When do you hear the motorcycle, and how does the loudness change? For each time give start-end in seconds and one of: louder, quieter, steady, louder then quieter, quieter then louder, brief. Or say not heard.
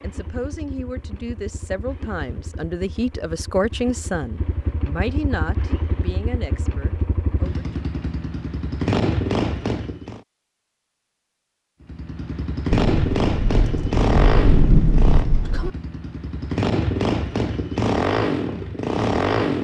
0.0-10.2 louder
11.8-19.5 quieter then louder.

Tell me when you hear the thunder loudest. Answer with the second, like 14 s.
15 s.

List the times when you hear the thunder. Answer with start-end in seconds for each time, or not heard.
12.9-15.7.